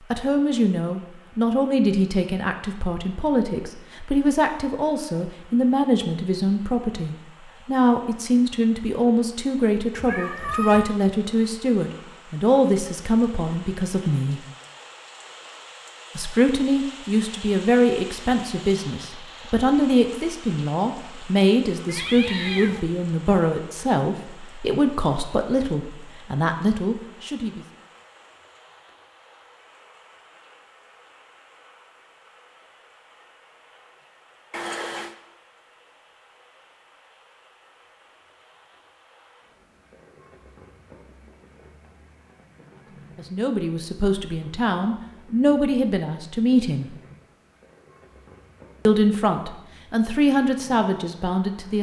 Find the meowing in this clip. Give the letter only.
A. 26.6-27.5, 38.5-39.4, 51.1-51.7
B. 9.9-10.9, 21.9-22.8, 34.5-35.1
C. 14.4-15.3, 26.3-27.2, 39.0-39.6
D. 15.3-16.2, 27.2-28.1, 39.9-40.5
B.